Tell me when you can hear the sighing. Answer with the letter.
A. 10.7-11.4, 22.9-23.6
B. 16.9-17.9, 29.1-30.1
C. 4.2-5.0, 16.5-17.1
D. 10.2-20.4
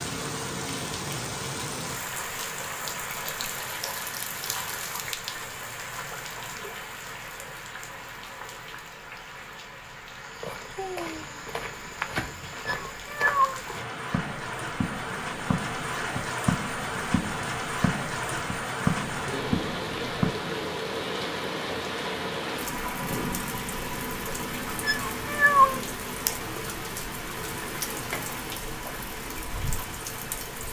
A.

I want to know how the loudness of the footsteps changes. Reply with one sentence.
The volume of the footsteps goes up.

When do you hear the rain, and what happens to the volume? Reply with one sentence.
The rain can be heard from 0.0 to 30.6 s, getting quieter then louder.